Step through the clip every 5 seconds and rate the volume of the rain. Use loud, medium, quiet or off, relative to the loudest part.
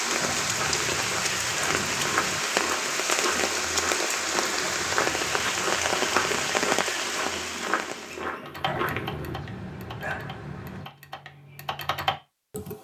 loud, loud, off.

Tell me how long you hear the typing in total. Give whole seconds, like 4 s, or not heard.
4 s.